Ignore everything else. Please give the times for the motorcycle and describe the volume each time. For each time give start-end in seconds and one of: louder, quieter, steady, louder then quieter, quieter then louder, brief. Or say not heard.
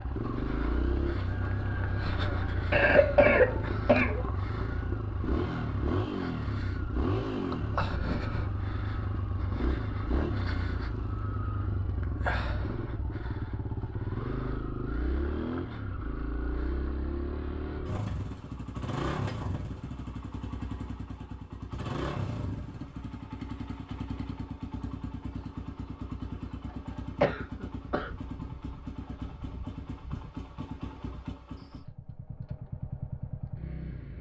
0.0-34.1 quieter.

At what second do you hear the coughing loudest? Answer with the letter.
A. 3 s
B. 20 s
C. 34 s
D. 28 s
A.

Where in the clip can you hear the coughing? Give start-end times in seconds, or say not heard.
2.7-4.2, 27.2-28.1.